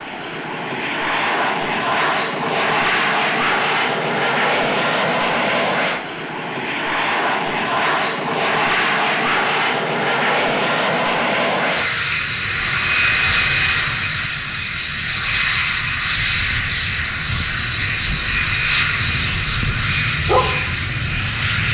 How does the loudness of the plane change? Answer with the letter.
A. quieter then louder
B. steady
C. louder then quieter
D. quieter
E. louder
B.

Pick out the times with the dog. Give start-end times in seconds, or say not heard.
20.1-21.6.